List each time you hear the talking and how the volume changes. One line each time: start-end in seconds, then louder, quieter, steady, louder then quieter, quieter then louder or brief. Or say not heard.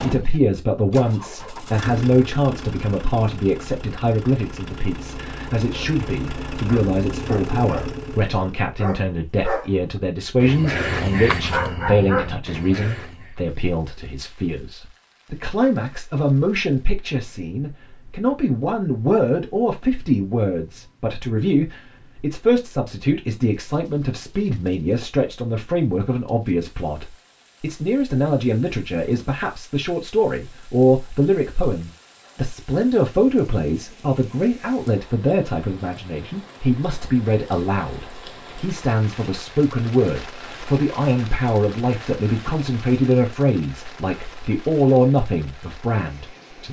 0.0-46.6 steady.